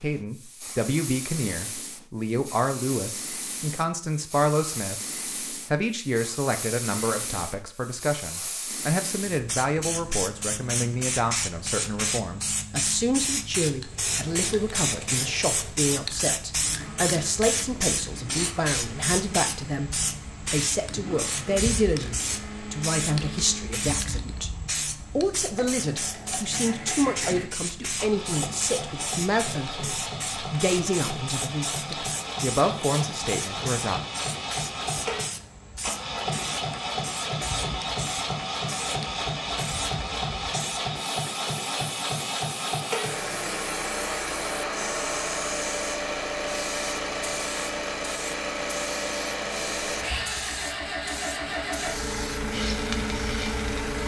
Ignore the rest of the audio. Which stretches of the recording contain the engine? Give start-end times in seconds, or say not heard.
13.8-54.0.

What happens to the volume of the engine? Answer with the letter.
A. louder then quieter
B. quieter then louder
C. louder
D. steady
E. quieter
C.